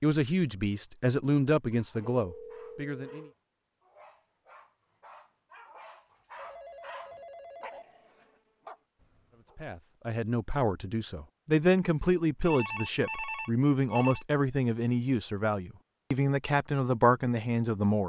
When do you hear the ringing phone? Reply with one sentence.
The ringing phone can be heard from 2.1 to 3.4 s, from 6.3 to 7.8 s and from 12.4 to 14.2 s.